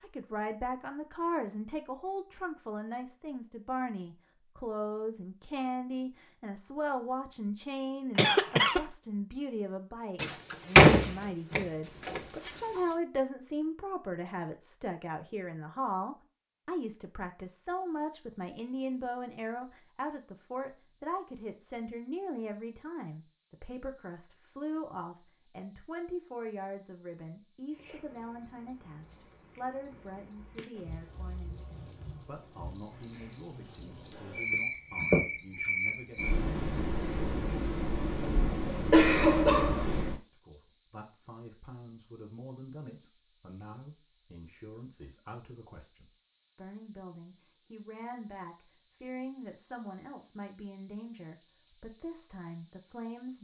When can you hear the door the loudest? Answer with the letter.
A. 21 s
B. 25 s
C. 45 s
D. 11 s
D.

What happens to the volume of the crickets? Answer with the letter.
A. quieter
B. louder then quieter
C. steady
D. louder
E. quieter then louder
D.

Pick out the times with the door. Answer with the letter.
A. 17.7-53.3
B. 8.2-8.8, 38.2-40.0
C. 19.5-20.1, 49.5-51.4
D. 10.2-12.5
D.